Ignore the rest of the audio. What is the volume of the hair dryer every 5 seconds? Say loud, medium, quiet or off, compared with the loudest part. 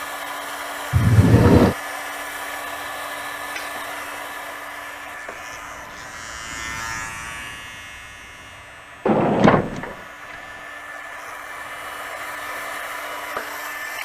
loud, medium, loud.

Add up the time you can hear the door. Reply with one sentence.
You can hear the door for 2 seconds altogether.